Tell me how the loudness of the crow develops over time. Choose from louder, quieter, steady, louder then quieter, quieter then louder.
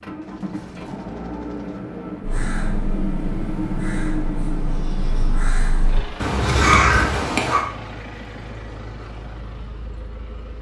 louder.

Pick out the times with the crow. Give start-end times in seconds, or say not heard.
2.2-7.7.